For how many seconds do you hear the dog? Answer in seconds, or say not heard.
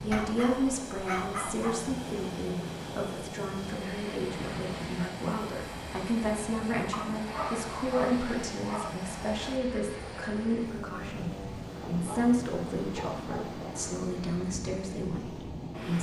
6 s.